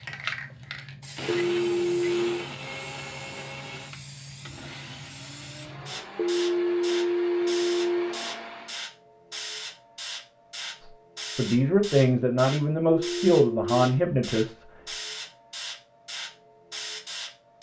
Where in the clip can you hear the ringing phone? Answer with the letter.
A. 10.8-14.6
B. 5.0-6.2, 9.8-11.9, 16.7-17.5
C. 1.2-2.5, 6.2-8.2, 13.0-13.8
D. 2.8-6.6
C.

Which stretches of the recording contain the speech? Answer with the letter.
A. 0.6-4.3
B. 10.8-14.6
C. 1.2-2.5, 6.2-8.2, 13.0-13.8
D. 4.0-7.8
B.